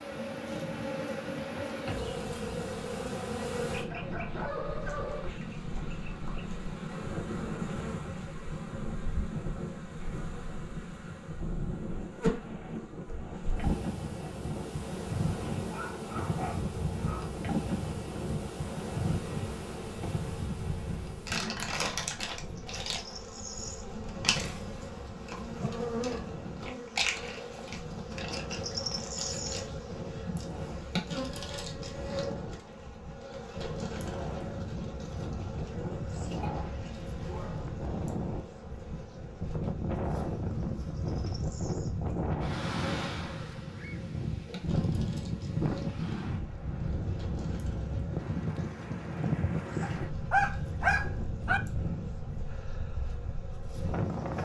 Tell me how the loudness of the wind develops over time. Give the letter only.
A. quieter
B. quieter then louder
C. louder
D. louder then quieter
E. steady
C.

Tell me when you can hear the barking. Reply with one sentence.
You can hear the barking from 3.6 to 5.3 s, from 15.7 to 17.4 s, from 36.4 to 37.7 s and from 49.8 to 51.6 s.